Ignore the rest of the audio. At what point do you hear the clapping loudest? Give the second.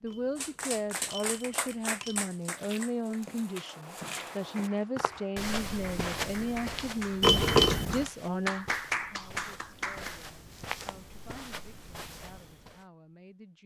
9 s.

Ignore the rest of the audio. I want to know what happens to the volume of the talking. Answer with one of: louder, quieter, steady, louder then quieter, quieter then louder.
quieter.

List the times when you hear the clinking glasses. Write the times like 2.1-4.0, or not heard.
0.1-2.3, 7.2-8.1.